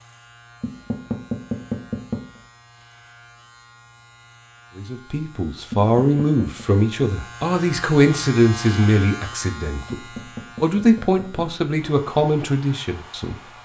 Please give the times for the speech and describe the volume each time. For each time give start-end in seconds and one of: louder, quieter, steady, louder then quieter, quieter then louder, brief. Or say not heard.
4.8-13.3 steady.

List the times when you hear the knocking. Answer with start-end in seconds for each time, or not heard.
0.6-2.4, 5.7-6.7, 9.9-11.5.